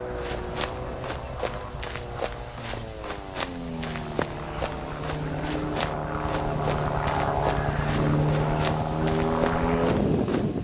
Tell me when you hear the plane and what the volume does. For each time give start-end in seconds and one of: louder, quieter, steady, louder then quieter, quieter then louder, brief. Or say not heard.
0.0-10.5 louder.